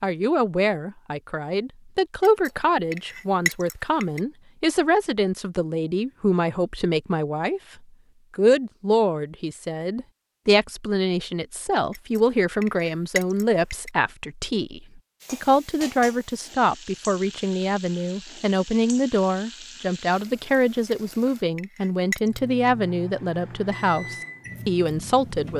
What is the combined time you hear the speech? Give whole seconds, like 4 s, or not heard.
25 s.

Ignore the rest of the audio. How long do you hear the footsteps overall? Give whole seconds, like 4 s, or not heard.
not heard.